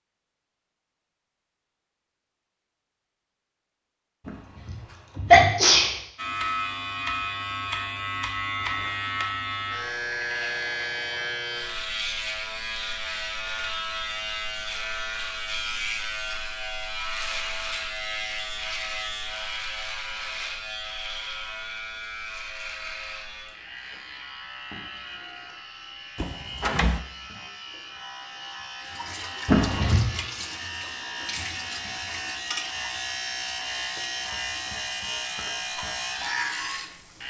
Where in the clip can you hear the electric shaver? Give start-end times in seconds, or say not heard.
6.2-37.2.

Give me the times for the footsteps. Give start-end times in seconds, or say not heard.
not heard.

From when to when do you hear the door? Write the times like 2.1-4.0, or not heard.
26.1-27.1.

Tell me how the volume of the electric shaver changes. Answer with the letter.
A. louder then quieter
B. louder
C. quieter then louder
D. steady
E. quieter
C.